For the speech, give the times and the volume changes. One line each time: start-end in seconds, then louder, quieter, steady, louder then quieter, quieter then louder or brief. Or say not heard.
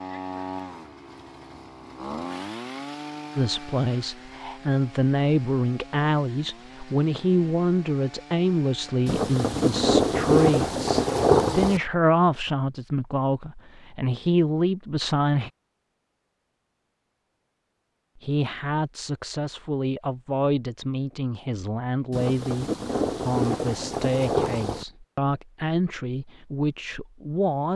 3.4-15.5 steady
18.1-27.7 steady.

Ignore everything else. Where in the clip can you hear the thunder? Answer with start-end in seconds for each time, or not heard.
9.1-11.8, 22.1-24.9.